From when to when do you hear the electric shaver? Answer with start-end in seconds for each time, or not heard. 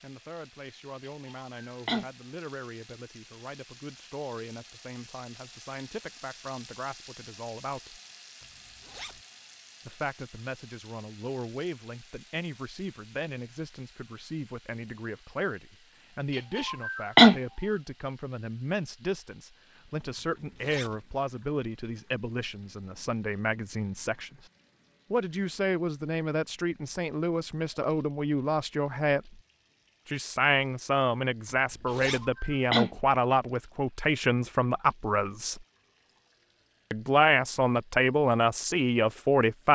not heard.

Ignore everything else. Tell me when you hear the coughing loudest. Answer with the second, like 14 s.
17 s.